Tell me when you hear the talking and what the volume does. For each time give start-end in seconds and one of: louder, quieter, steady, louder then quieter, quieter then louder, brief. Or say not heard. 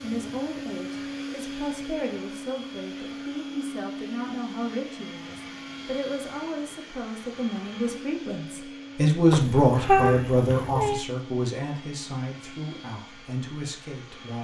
0.0-14.3 louder then quieter.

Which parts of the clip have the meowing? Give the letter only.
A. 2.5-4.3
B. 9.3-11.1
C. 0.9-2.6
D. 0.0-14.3
B.